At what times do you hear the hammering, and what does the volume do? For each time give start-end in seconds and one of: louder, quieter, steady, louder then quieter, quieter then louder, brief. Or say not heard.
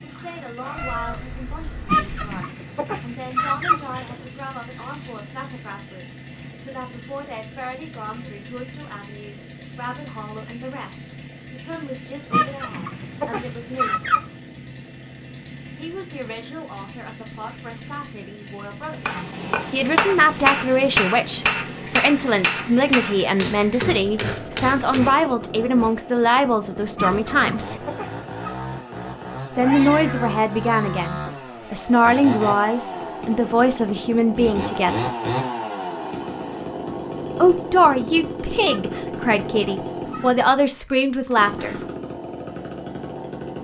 19.1-25.5 quieter.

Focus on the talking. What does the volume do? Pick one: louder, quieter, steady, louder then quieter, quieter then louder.
louder.